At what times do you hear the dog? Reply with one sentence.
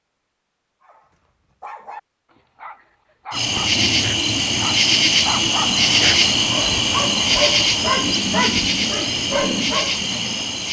You can hear the dog from 0.8 to 10.0 s.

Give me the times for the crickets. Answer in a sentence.
You can hear the crickets from 3.3 to 10.6 s.